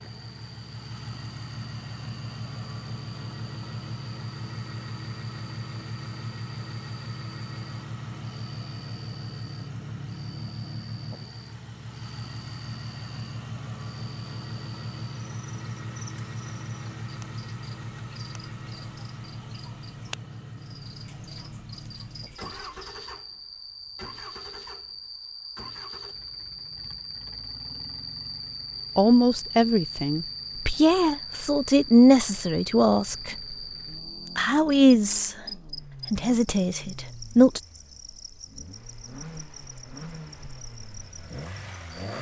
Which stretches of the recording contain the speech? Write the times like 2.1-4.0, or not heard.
28.9-33.5, 34.4-35.4, 36.1-37.6.